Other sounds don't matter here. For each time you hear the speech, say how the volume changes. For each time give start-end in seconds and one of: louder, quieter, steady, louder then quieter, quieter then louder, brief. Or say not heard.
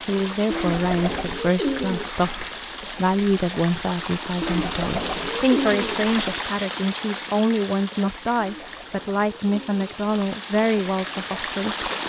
0.1-11.9 steady.